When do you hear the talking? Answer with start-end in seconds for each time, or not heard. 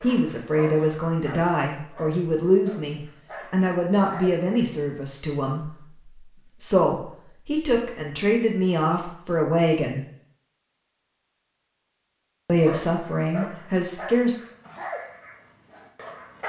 0.0-10.1, 12.4-14.3.